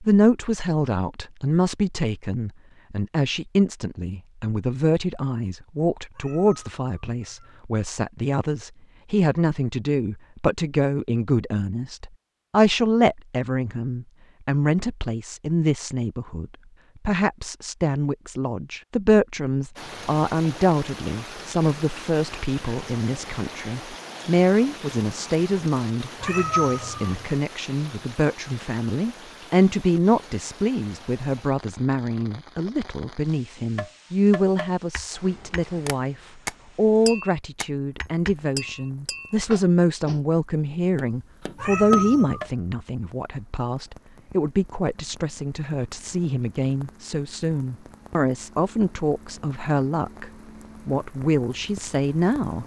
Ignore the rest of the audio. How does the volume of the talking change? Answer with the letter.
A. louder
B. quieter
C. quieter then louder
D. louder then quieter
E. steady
E.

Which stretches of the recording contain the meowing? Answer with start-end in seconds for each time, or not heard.
6.2-7.6, 26.2-27.2, 41.5-42.5.